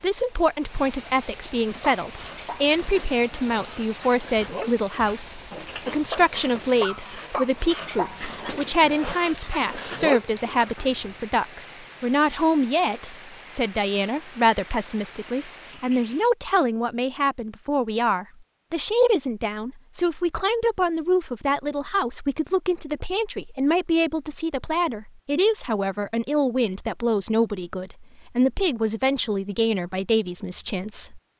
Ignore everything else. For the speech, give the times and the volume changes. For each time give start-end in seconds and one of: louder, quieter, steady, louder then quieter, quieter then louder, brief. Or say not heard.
0.0-31.2 steady.